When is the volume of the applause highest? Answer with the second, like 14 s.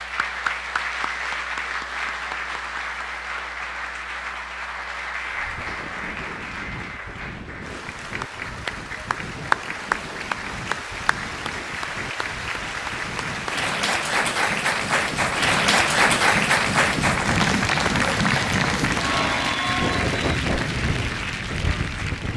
16 s.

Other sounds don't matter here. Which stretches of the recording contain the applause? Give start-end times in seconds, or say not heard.
0.0-22.3.